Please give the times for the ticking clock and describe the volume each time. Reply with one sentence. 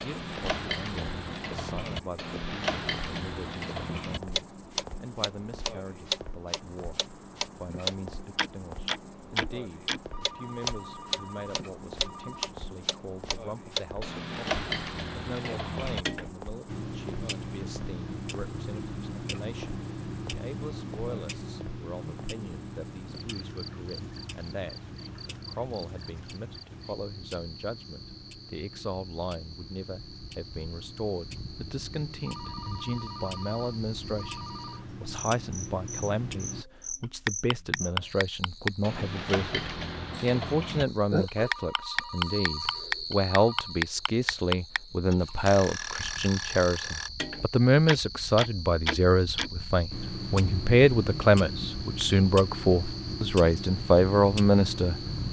You can hear the ticking clock from 0.0 to 55.2 s, getting quieter then louder.